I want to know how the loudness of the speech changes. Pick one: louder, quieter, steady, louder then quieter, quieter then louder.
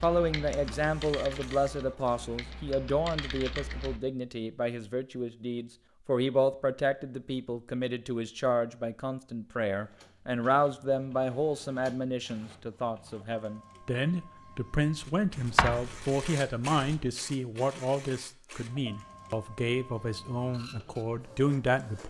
steady.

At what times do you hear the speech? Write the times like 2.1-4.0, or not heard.
0.0-22.0.